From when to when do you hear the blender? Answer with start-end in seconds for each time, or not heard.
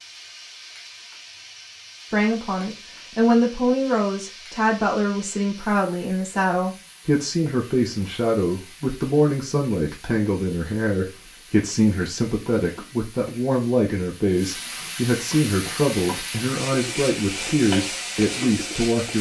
not heard.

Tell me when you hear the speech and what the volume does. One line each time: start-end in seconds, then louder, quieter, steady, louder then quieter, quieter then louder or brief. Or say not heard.
2.1-19.1 steady.